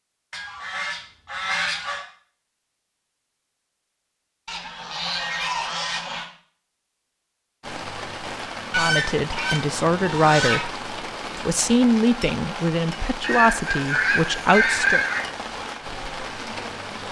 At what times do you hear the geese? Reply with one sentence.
The geese can be heard from 0.3 to 2.0 s, from 4.5 to 6.2 s, from 8.7 to 10.7 s and from 13.2 to 15.2 s.